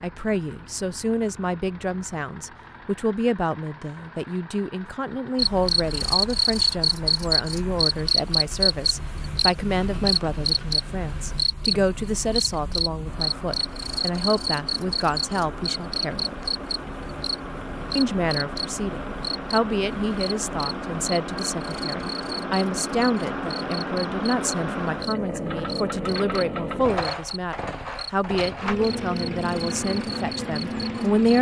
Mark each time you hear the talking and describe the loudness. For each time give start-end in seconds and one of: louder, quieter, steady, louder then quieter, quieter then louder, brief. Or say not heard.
0.0-16.4 steady
17.9-31.3 steady.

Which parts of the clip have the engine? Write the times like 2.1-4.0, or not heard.
0.0-31.3.